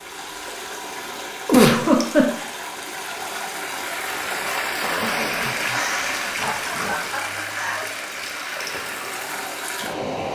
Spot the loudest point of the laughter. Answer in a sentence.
The volume of the laughter peaks at 2 seconds.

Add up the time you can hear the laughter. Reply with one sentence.
The laughter can be heard for 3 seconds in total.